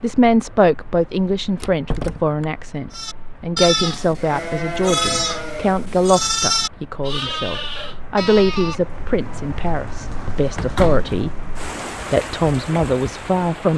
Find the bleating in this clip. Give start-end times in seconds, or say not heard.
2.9-8.8.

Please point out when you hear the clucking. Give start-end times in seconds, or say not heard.
not heard.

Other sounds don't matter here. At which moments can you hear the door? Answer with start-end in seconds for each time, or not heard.
1.6-2.5, 10.6-11.2.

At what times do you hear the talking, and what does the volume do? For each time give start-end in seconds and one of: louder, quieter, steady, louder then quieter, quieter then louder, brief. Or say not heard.
0.0-11.3 steady
12.1-13.7 brief.